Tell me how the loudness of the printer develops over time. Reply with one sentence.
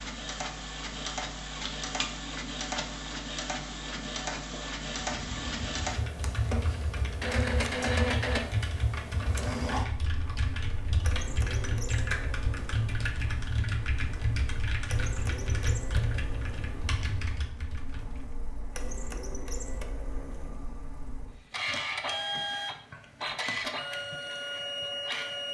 The volume of the printer goes down, then up.